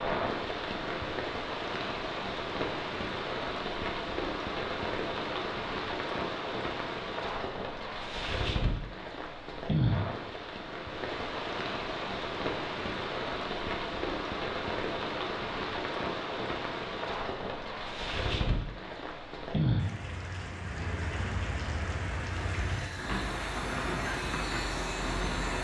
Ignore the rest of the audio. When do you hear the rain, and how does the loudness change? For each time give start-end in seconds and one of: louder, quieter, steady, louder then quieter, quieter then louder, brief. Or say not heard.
0.0-25.5 steady.